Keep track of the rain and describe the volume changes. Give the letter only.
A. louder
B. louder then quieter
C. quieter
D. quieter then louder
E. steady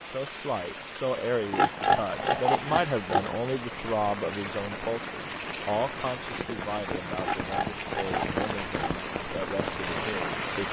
A.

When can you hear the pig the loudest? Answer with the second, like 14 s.
2 s.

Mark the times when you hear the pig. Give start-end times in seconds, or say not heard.
1.5-3.3, 7.2-9.1.